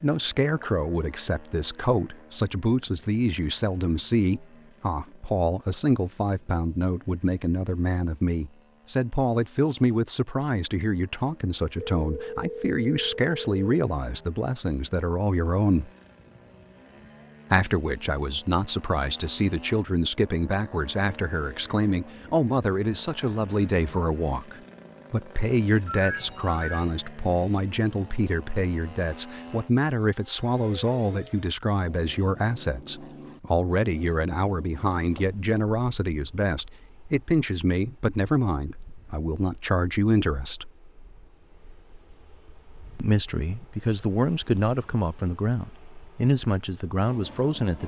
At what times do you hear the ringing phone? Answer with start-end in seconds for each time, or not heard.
11.8-13.7, 25.9-26.9, 35.1-35.6.